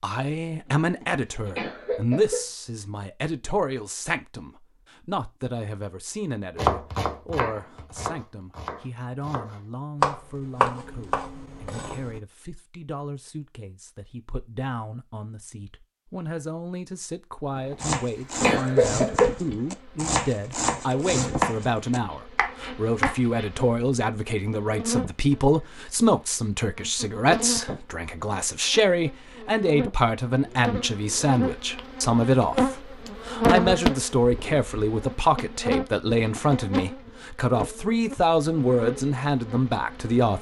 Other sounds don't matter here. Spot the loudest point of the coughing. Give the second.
19 s.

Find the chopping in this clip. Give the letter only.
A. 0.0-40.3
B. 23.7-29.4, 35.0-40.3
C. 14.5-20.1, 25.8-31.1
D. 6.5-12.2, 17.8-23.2
D.